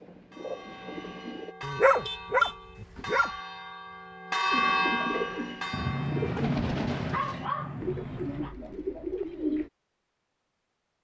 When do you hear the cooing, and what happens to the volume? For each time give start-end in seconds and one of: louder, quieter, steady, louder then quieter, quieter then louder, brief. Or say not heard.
0.0-1.6 brief
4.5-9.7 steady.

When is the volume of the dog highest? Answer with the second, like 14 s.
2 s.